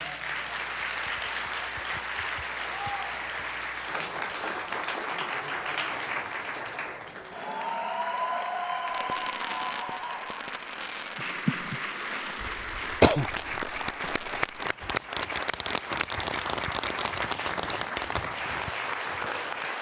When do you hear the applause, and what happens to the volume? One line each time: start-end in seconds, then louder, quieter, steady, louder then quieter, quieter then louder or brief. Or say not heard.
0.0-19.7 steady.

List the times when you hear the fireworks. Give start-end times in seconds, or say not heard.
8.8-18.3.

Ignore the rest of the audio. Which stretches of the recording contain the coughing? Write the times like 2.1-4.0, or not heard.
12.4-13.3.